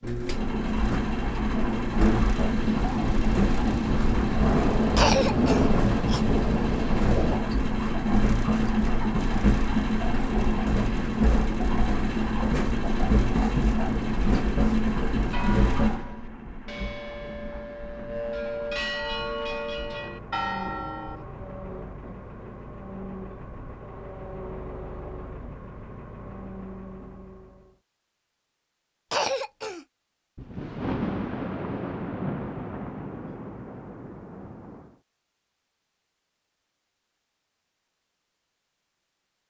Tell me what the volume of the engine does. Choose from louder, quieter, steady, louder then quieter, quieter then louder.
quieter.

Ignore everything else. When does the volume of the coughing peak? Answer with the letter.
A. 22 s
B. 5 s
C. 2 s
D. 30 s
B.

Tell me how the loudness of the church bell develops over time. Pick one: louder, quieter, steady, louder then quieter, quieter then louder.
louder.